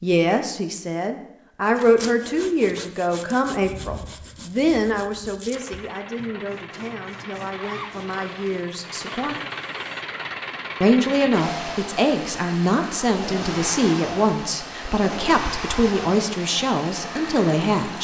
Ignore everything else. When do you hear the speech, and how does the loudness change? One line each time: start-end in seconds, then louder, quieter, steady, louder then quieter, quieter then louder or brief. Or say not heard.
0.0-9.3 quieter
10.8-17.9 steady.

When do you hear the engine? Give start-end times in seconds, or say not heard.
5.5-17.9.